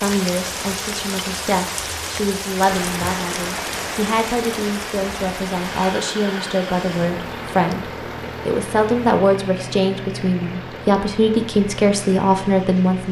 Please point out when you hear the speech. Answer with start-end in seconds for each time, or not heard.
0.0-13.0.